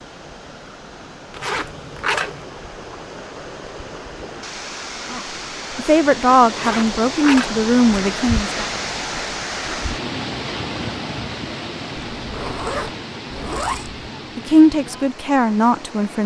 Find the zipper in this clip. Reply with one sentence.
You can hear the zipper from 1.3 to 2.5 s, from 6.5 to 7.8 s and from 12.2 to 14.1 s.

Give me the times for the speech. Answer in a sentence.
You can hear the speech from 5.1 to 8.7 s and from 14.3 to 16.2 s.